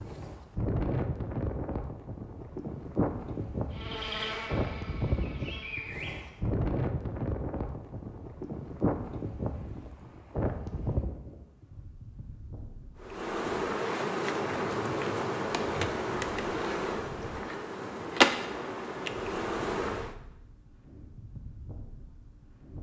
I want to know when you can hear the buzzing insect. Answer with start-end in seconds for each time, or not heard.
3.7-6.3, 13.0-20.1.